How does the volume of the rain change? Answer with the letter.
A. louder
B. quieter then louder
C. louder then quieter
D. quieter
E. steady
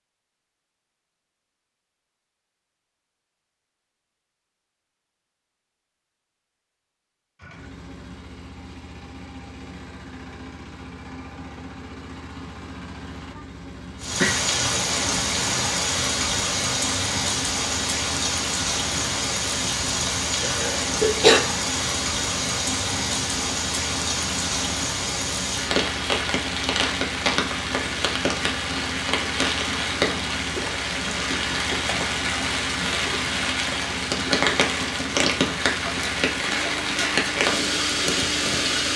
E.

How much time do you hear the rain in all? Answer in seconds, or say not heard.
25 s.